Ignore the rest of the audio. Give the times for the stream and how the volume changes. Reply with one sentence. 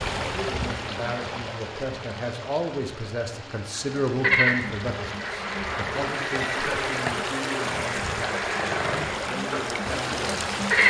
You can hear the stream from 0.0 to 10.8 s, getting quieter then louder.